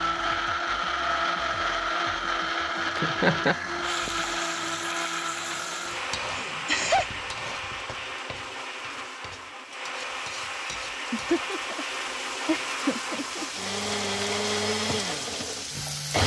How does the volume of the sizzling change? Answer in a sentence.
The loudness of the sizzling goes down, then up.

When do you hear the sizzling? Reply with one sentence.
The sizzling can be heard from 3.8 to 16.2 s.